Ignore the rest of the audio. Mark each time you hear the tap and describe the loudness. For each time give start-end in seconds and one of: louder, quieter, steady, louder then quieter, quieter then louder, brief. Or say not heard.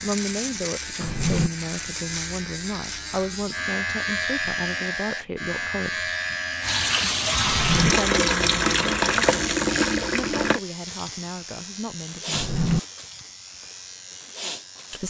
6.6-10.6 steady.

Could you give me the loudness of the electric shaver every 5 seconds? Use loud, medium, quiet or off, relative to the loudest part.
loud, loud, medium.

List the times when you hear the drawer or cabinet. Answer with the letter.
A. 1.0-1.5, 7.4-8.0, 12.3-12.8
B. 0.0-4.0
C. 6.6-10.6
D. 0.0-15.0
A.